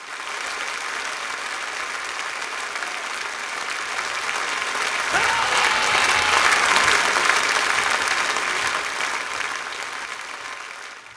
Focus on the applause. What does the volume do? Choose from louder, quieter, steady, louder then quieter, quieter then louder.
louder then quieter.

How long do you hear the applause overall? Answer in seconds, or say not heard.
11 s.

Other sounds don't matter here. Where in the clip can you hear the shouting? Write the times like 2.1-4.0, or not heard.
5.1-6.7.